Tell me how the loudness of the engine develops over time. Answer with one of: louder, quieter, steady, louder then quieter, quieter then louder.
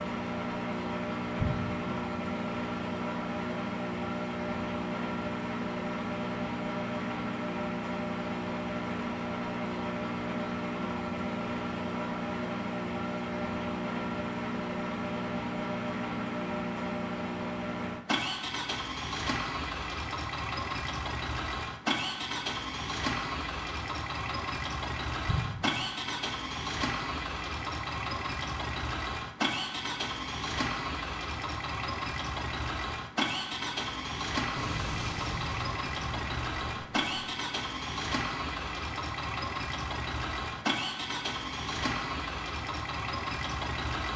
steady.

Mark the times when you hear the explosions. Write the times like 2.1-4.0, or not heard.
1.4-2.0, 25.2-25.9, 34.5-37.3.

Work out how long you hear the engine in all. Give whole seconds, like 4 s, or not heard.
44 s.